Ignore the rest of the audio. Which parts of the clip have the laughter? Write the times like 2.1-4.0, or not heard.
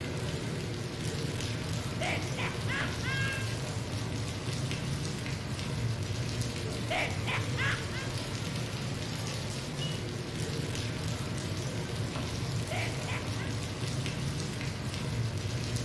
1.9-3.5, 6.8-8.1, 12.6-13.5.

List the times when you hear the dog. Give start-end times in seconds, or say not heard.
not heard.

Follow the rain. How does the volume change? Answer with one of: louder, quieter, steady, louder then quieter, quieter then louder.
steady.